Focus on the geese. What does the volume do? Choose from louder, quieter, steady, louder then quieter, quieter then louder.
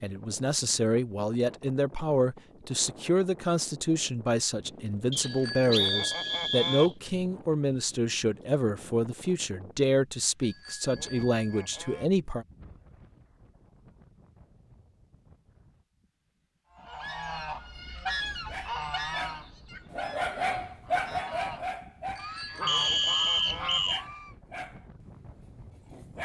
quieter then louder.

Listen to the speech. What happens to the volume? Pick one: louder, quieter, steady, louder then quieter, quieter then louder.
steady.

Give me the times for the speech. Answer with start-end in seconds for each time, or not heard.
0.0-12.4.